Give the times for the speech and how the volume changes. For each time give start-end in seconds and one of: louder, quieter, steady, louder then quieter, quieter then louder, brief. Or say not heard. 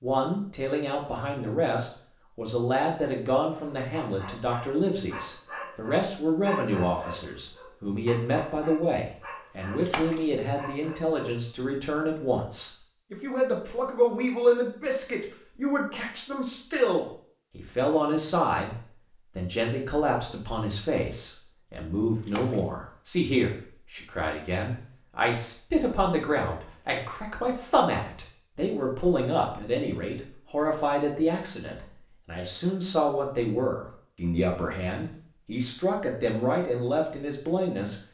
0.0-18.8 steady
19.4-38.0 steady.